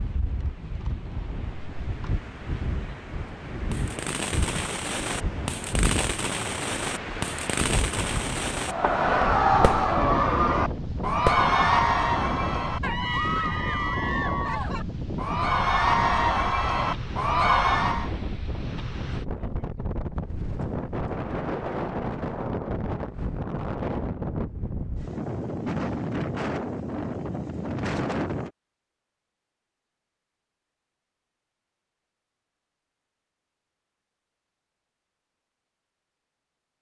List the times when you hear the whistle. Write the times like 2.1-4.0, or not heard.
not heard.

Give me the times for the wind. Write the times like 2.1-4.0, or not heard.
0.0-28.5.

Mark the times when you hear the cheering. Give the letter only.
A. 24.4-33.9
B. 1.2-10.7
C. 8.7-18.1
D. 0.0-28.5
C.